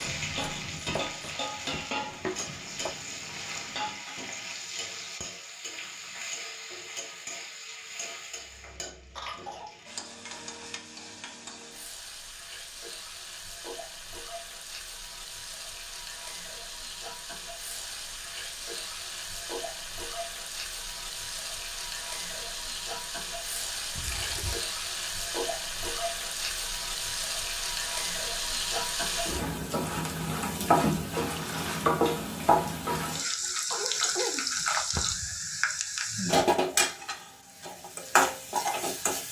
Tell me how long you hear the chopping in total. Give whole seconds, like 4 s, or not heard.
3 s.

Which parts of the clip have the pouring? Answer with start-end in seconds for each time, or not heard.
2.0-4.0, 23.9-24.6, 31.1-31.9.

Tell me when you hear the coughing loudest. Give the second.
34 s.